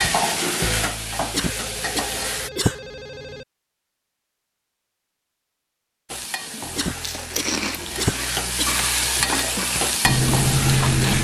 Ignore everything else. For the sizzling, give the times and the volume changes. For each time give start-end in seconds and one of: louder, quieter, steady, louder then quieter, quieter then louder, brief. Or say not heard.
0.0-2.5 brief
6.0-11.1 louder.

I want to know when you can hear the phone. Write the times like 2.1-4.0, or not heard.
1.4-3.5.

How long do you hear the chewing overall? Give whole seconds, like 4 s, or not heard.
4 s.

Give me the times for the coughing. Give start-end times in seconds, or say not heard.
1.3-2.8, 6.8-9.2.